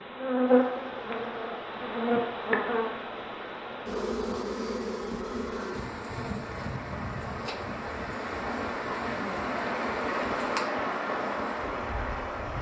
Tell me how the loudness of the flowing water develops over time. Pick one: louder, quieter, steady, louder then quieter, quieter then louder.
louder.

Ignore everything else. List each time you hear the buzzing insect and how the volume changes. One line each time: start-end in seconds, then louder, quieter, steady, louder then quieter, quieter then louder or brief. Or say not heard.
0.0-12.5 quieter.